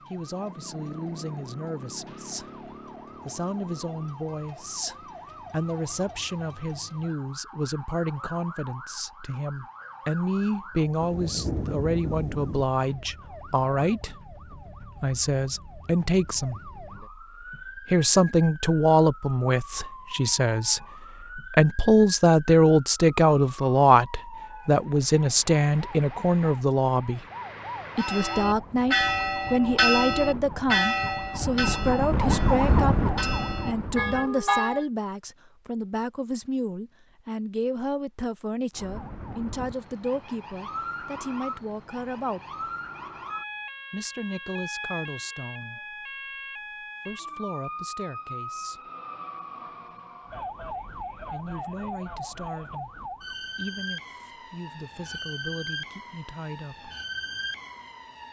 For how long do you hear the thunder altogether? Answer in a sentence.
The thunder can be heard for 2 seconds in total.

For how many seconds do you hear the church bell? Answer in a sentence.
You can hear the church bell for 7 seconds altogether.